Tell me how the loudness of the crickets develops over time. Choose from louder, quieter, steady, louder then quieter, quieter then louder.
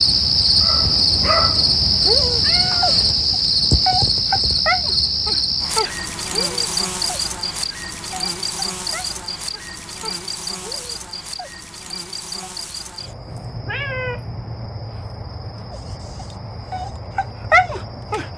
quieter.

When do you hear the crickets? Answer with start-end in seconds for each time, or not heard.
0.0-18.3.